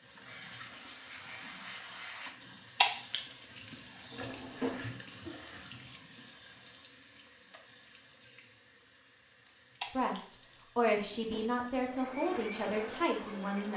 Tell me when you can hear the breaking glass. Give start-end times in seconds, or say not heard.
2.8-3.2, 9.8-10.3.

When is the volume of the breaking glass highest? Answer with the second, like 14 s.
3 s.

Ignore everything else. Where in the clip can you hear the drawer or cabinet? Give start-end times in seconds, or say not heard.
4.1-5.0, 10.9-11.7.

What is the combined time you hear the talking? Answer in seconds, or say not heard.
4 s.